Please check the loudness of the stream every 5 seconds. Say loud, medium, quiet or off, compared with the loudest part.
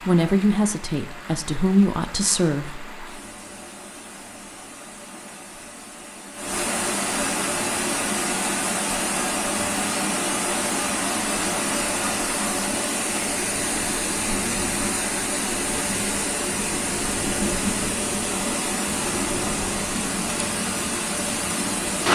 quiet, loud, loud, loud, loud.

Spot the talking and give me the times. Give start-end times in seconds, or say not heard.
0.1-3.0.